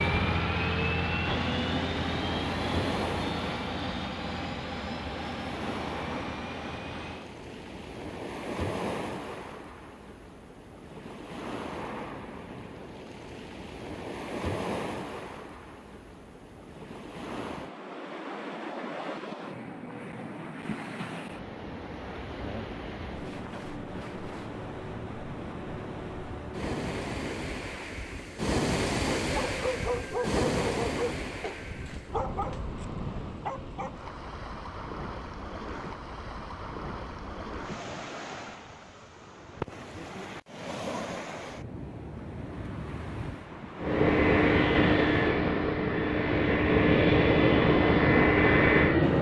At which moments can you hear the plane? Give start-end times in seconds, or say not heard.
0.0-7.3, 43.8-49.1.